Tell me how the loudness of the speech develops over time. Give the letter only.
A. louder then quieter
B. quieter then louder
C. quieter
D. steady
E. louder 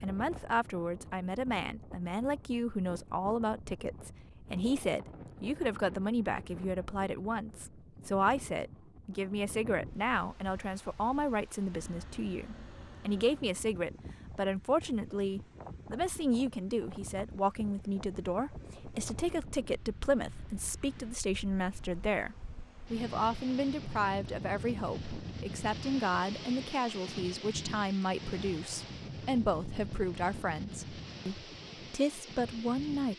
D.